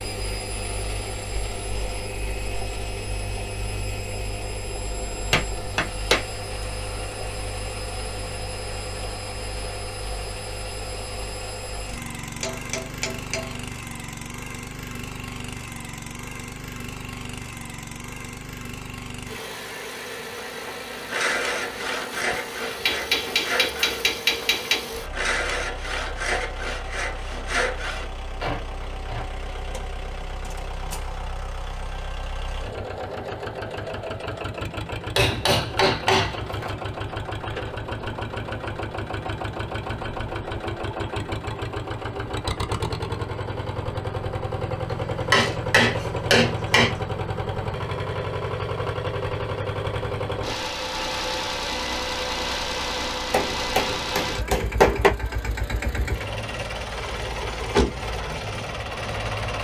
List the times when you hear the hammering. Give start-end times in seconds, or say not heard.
5.3-6.2, 12.4-13.5, 22.9-24.9, 35.1-36.8, 44.9-47.0, 53.3-55.1.